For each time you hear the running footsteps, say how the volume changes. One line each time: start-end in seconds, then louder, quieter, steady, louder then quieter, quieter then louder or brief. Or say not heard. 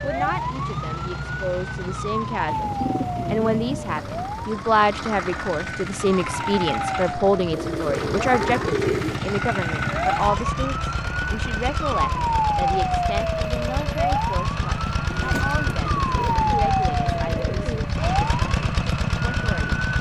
not heard.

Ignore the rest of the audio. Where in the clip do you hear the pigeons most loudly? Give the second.
9 s.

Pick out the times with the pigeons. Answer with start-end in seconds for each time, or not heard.
2.5-4.5, 7.5-9.2, 15.1-17.9.